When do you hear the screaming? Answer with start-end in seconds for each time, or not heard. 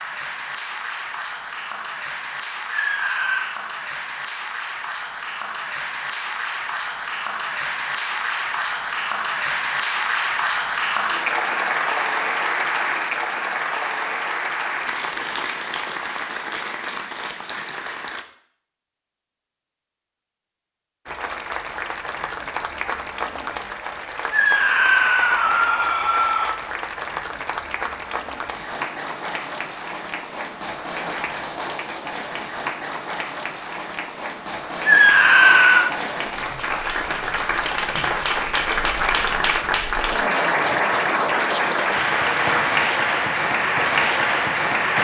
2.7-3.5, 24.3-26.6, 34.9-35.9.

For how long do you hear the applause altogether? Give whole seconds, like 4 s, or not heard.
42 s.